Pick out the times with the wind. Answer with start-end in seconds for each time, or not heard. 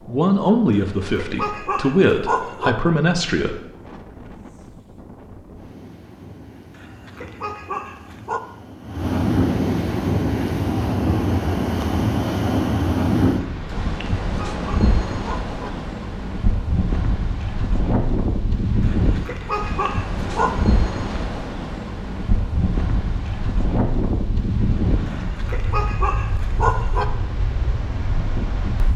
0.0-28.9.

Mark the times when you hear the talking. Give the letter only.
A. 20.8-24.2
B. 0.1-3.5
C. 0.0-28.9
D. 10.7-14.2
B.